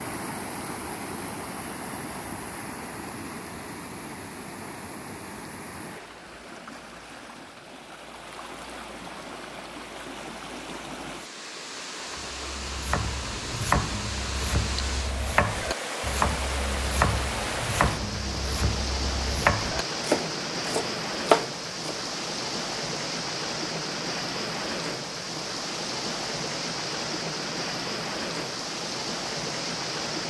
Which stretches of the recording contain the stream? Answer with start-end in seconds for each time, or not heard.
0.0-30.2.